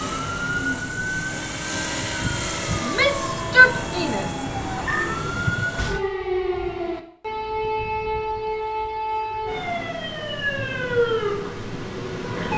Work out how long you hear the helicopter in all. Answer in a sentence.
The helicopter can be heard for 6 seconds in total.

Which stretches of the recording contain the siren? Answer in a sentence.
The siren can be heard from 0.0 to 12.5 s.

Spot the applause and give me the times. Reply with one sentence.
You can't hear the applause here.